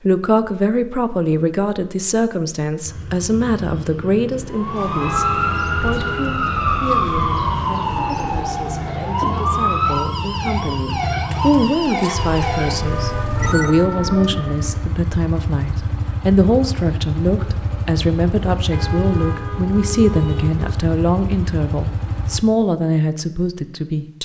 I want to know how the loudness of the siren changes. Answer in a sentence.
The loudness of the siren goes down.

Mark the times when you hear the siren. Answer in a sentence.
The siren can be heard from 4.5 to 14.8 s.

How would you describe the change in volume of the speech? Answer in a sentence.
The volume of the speech goes down, then up.